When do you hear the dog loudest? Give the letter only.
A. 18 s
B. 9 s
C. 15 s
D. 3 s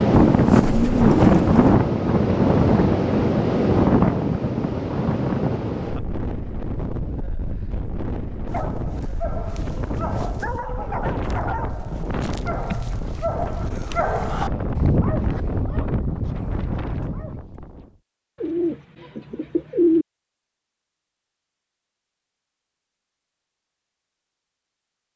C.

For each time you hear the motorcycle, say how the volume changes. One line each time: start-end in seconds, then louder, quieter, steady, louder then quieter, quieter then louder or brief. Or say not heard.
not heard.